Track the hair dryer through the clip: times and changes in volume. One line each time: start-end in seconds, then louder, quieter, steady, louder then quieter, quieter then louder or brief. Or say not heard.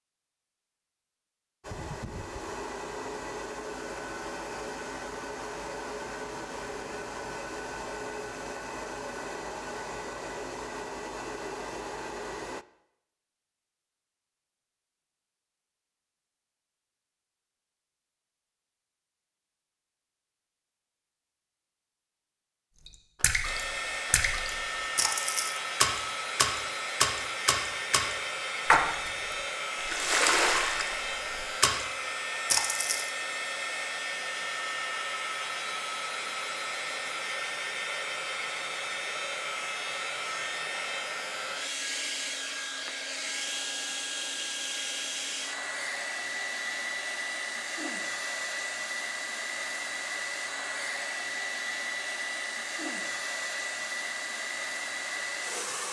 1.6-12.7 steady
23.4-55.8 steady.